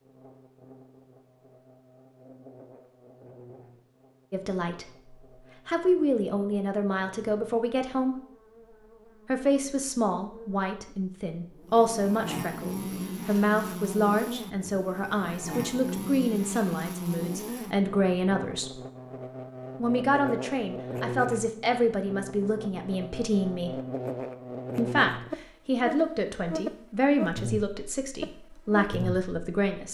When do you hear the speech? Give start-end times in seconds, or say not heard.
4.3-5.0, 5.7-8.2, 9.2-18.8, 19.8-23.8, 24.8-29.9.